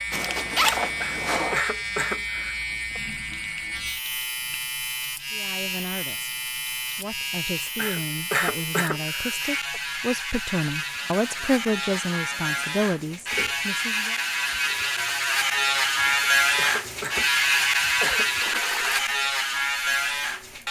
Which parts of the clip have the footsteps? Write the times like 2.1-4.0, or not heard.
not heard.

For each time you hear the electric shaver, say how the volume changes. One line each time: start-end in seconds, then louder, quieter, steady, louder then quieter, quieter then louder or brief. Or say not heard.
0.0-20.6 louder.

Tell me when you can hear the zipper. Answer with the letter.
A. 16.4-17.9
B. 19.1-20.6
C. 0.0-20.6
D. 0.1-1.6
D.